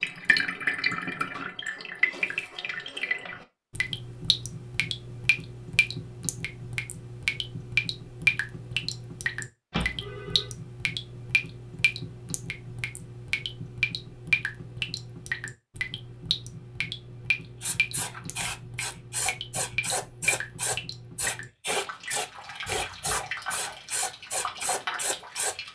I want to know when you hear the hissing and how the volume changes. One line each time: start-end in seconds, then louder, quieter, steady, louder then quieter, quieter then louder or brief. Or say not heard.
17.6-25.6 steady.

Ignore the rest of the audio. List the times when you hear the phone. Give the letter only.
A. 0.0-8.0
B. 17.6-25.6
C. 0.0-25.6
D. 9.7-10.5
D.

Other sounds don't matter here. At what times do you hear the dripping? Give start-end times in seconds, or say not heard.
0.0-25.6.